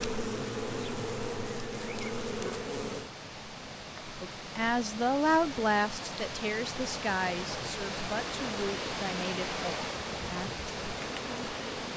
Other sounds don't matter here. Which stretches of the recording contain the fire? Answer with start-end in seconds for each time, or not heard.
not heard.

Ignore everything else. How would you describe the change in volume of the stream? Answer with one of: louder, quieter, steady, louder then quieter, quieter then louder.
louder.